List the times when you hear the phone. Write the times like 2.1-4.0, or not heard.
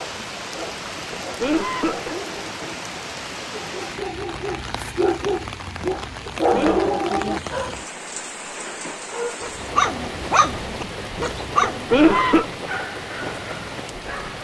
not heard.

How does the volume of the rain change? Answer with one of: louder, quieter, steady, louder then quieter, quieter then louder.
steady.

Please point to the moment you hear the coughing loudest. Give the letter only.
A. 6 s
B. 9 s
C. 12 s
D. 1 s
C.